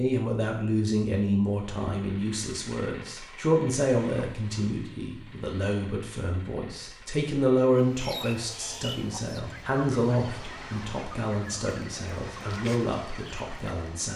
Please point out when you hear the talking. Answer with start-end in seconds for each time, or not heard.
0.0-14.1.